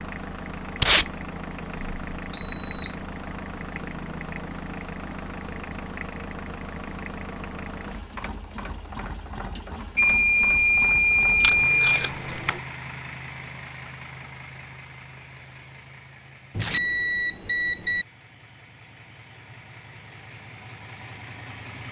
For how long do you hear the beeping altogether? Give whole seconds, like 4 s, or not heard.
5 s.